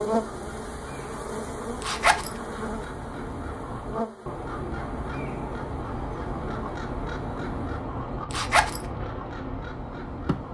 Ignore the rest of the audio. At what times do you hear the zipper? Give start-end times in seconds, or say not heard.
1.8-2.3, 8.3-8.8.